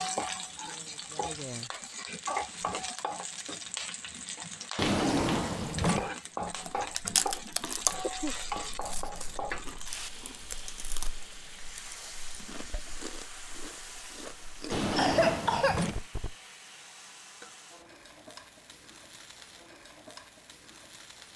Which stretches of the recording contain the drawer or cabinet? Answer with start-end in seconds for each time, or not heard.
4.8-6.1, 14.7-16.1.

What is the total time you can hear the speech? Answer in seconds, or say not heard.
2 s.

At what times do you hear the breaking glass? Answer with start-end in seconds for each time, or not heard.
not heard.